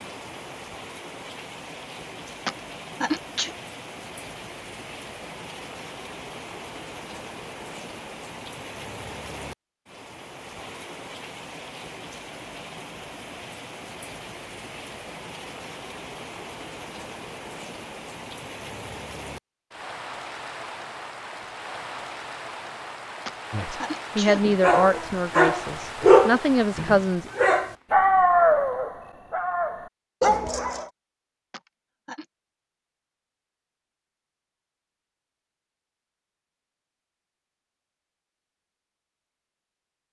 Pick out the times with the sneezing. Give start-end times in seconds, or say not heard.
2.5-3.5, 23.2-24.6, 31.5-32.2.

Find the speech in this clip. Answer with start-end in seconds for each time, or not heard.
23.5-27.3.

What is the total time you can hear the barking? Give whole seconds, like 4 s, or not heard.
6 s.